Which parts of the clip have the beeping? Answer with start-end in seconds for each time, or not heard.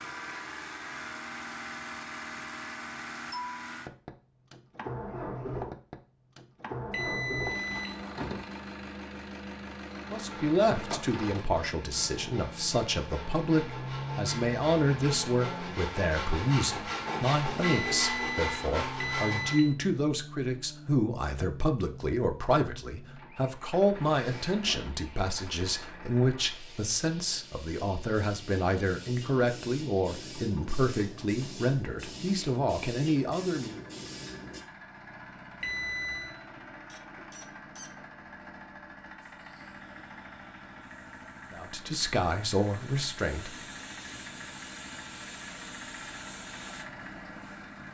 6.9-8.1, 17.6-19.8, 35.6-36.4.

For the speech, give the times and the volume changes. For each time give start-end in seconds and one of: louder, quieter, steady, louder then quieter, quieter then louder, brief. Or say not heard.
10.1-33.8 steady
41.5-43.5 brief.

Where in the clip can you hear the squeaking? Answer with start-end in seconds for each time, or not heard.
36.9-38.0.